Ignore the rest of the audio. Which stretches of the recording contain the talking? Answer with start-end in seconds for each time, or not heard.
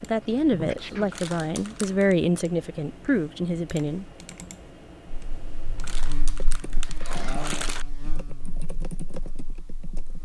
0.0-4.0.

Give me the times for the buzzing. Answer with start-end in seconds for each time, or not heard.
5.1-10.1.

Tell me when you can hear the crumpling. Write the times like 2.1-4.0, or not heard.
1.1-2.1, 5.8-7.8.